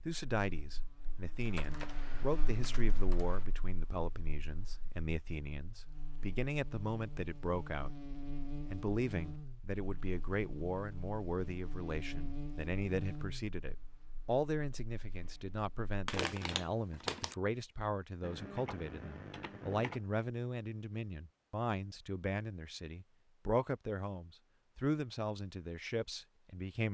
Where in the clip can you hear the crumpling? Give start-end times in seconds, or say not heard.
16.1-17.4.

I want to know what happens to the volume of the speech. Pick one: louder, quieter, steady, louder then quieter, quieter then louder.
steady.